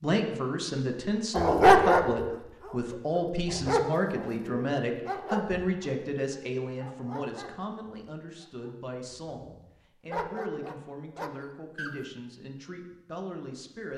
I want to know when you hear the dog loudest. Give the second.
2 s.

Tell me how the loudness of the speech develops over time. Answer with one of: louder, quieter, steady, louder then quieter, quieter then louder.
quieter.